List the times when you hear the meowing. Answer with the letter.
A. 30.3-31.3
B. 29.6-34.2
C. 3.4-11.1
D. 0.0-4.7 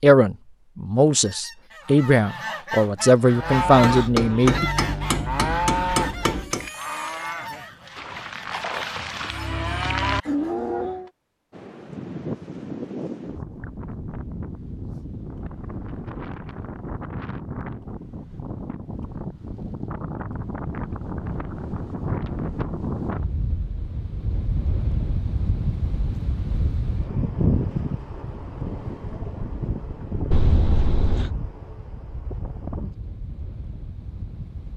A.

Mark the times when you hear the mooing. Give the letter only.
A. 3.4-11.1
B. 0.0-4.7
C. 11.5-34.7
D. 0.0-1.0
A.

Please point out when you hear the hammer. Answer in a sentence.
You can hear the hammer from 4.0 to 6.7 s.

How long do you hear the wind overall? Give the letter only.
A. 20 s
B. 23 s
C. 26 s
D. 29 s
B.